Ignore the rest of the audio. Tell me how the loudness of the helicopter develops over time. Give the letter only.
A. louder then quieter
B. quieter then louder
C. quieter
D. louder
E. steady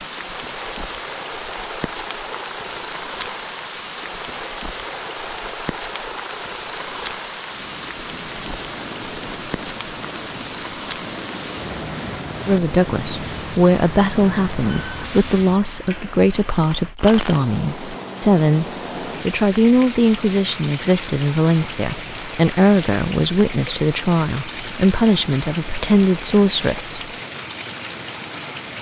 E.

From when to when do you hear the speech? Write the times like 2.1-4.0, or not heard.
12.4-18.6, 19.2-26.9.